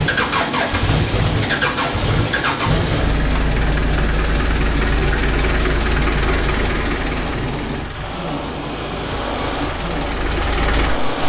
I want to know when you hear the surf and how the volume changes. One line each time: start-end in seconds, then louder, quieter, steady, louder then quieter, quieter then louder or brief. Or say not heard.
0.0-11.2 steady.